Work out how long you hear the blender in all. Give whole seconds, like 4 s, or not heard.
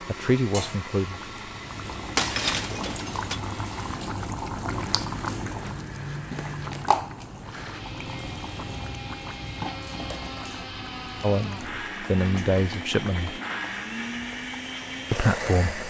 16 s.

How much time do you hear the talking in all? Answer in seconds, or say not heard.
4 s.